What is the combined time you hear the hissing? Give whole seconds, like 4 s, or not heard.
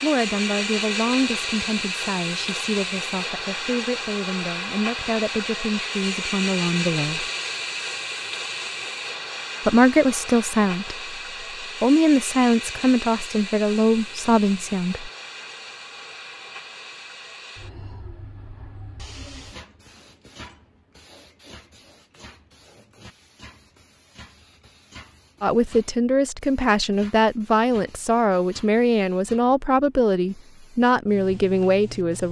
32 s.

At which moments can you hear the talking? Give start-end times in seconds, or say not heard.
0.0-7.2, 9.7-15.1, 25.4-32.2.